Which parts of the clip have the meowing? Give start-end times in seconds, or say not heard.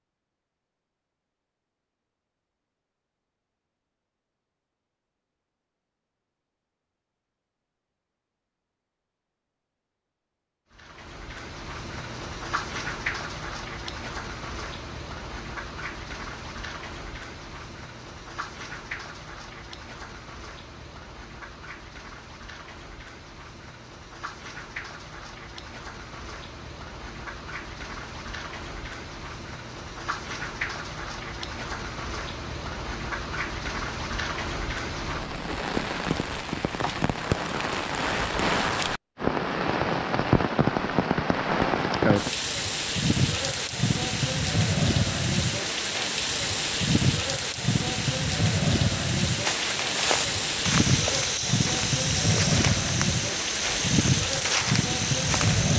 not heard.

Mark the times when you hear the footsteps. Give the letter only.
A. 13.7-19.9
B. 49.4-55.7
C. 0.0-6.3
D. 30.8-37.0
B.